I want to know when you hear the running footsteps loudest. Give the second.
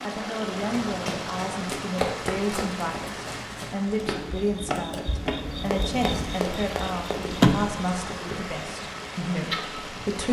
2 s.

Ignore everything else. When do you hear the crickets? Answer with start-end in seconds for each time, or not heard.
3.9-10.2.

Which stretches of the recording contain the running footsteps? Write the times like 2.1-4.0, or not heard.
0.5-7.5.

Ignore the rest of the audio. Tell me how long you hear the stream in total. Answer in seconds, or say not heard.
10 s.